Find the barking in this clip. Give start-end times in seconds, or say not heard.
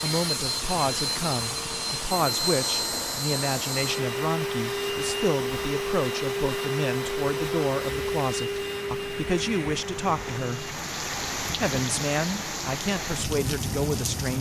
not heard.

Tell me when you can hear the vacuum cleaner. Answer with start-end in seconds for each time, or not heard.
0.0-10.8.